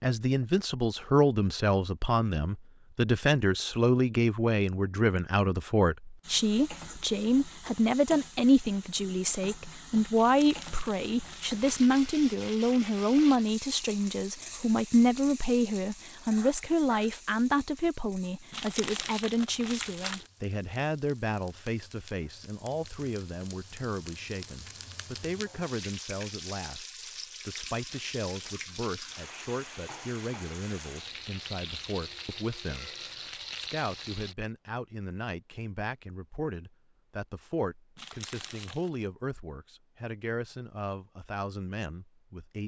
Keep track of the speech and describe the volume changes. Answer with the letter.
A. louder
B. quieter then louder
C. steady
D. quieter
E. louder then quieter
D.